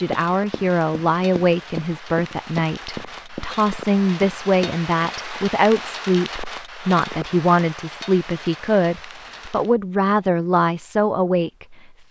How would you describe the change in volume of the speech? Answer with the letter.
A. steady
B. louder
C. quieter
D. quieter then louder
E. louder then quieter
A.